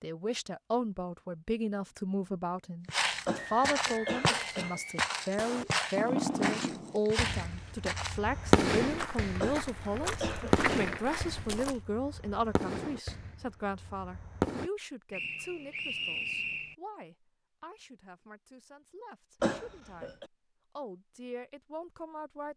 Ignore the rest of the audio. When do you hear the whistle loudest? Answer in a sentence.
The loudest moment of the whistle is at 16 seconds.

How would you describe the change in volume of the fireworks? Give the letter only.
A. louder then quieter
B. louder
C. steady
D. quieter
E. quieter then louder
D.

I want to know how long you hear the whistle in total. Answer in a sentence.
You can hear the whistle for 3 seconds altogether.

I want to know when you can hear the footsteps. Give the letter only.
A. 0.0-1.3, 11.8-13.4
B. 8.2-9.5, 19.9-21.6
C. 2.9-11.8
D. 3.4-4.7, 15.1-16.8
C.